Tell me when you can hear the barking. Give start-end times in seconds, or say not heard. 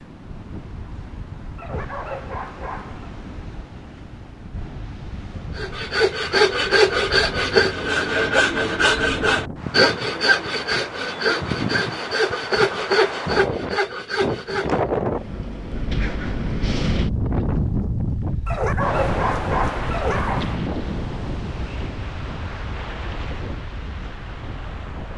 1.6-3.1, 18.4-20.6.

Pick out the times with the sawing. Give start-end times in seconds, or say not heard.
5.5-14.8.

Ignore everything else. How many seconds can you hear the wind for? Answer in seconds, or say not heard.
25 s.